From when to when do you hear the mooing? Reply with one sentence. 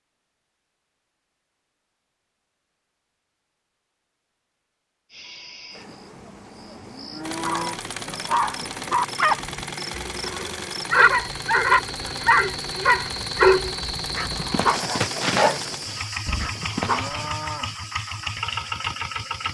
The mooing can be heard from 5.8 to 7.8 s and from 16.2 to 17.8 s.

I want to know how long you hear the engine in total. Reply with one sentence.
The engine can be heard for 12 seconds in total.